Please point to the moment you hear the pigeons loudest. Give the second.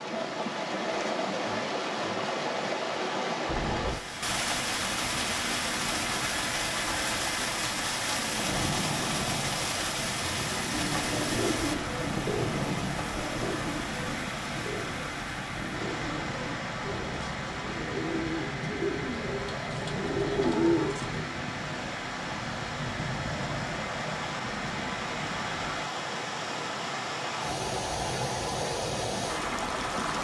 21 s.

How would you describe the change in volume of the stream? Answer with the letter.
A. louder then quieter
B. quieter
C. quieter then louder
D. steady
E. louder
C.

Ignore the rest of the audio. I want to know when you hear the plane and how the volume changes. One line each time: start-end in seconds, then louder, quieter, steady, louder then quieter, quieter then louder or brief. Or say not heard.
3.5-25.9 steady.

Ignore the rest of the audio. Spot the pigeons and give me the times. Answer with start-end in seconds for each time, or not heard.
10.7-21.2.